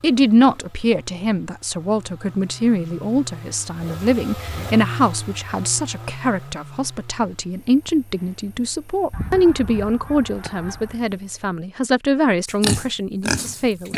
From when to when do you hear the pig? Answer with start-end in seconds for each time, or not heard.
12.4-13.9.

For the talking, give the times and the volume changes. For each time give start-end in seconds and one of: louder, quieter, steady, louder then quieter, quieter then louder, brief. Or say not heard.
0.0-13.9 steady.